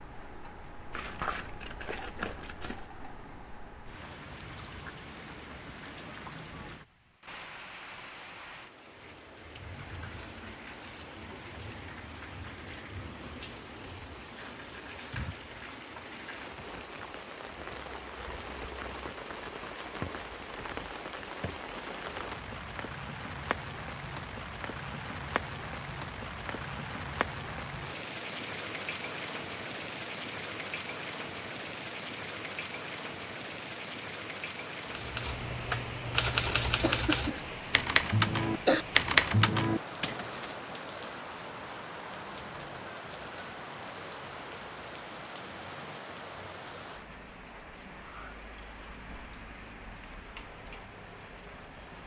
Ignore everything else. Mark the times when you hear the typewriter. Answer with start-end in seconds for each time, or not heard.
34.9-40.5.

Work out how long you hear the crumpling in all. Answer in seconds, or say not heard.
2 s.